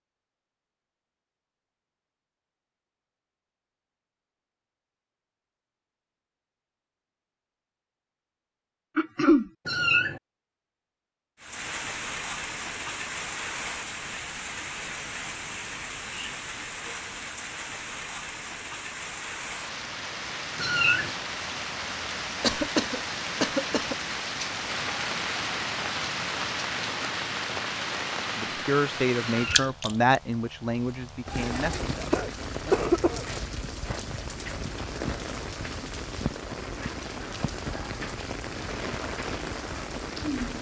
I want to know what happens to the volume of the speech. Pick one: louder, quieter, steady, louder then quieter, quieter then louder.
quieter.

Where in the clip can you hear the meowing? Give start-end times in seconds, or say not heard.
9.7-10.2, 20.6-21.1, 29.2-29.7.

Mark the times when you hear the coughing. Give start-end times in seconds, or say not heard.
8.9-9.5, 22.4-23.9, 32.1-33.2.